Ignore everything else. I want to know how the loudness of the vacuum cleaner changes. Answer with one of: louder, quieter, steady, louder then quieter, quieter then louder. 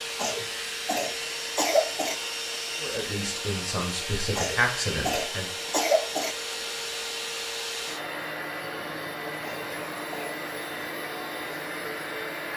steady.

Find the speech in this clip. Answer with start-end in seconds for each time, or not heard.
2.8-5.7.